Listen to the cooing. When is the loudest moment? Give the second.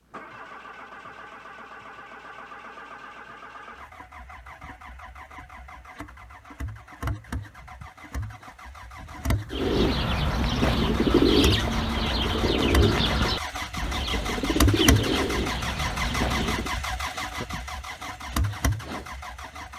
11 s.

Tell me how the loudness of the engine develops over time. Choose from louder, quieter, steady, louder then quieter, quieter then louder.
louder.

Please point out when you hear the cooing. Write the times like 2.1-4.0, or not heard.
9.5-16.8.